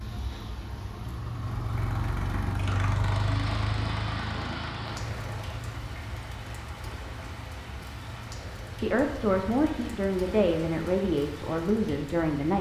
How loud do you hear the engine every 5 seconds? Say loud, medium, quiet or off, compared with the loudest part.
loud, medium, off.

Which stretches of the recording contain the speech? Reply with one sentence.
The speech can be heard from 8.8 to 12.5 s.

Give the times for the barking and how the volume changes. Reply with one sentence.
You can't hear the barking here.